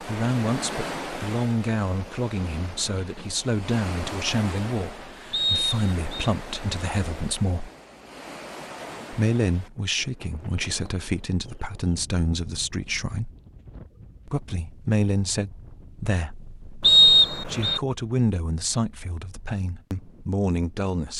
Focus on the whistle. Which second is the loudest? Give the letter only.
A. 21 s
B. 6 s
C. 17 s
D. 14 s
C.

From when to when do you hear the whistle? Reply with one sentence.
You can hear the whistle from 5.3 to 6.3 s and from 16.8 to 17.8 s.